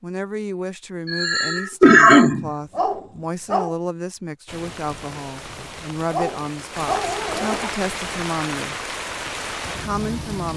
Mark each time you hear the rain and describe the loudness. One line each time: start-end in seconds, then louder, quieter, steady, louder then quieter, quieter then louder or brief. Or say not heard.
4.5-10.5 louder.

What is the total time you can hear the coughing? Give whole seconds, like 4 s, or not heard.
2 s.